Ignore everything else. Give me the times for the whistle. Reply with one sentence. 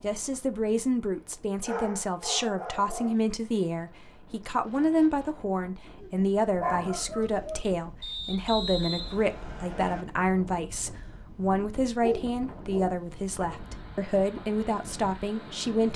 The whistle can be heard from 8.0 to 10.1 s.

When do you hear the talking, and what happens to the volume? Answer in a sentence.
You can hear the talking from 0.0 to 15.9 s, at a steady volume.